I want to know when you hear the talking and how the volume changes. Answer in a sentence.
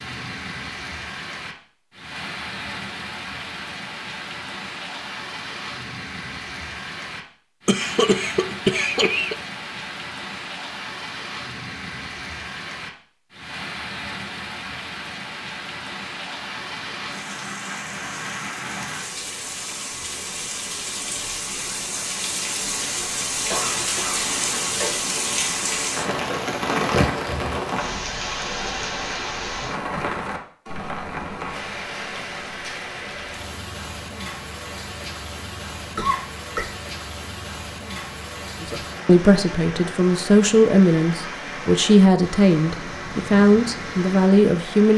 You can hear the talking from 38.6 to 44.9 s, at a steady volume.